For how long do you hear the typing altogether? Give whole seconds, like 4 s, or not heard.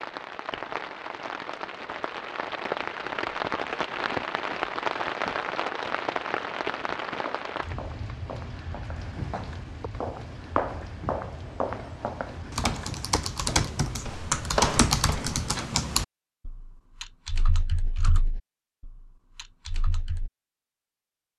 8 s.